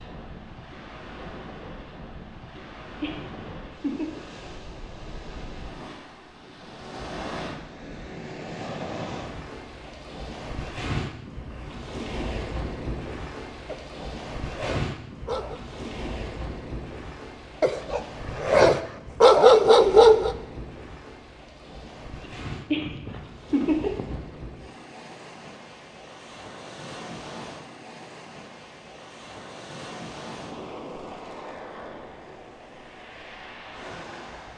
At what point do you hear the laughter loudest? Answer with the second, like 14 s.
24 s.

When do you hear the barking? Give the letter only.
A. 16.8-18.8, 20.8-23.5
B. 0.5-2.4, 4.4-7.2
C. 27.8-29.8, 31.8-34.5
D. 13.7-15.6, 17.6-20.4
D.